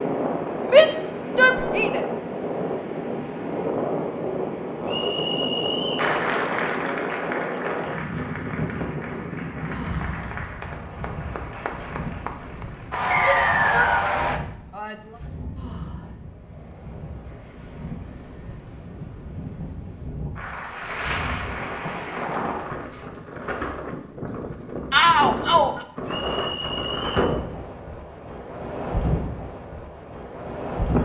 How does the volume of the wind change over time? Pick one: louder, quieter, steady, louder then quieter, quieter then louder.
quieter then louder.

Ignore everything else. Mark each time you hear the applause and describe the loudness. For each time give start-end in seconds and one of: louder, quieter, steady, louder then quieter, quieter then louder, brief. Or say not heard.
6.0-14.4 quieter then louder
20.4-22.2 brief.